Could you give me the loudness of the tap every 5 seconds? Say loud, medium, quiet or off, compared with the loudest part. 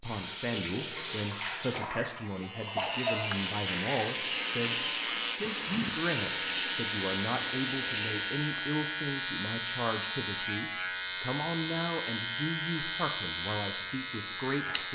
loud, loud, off.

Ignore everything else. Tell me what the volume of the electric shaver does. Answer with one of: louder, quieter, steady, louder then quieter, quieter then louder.
steady.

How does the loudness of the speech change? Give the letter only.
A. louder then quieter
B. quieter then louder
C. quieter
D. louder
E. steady
E.